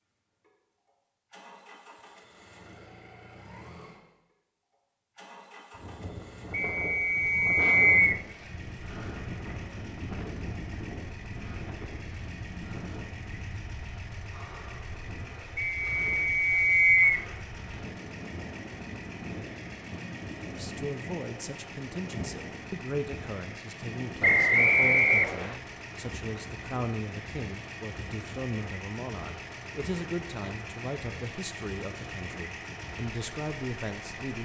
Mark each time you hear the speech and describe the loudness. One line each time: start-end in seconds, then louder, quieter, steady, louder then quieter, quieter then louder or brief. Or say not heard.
20.6-34.4 steady.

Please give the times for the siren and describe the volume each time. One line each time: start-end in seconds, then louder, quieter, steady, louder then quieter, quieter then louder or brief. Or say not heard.
not heard.